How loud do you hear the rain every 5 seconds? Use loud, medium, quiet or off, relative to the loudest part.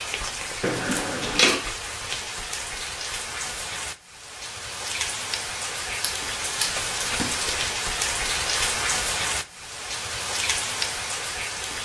medium, loud, loud.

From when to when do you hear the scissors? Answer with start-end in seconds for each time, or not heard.
0.6-1.6, 6.0-7.5.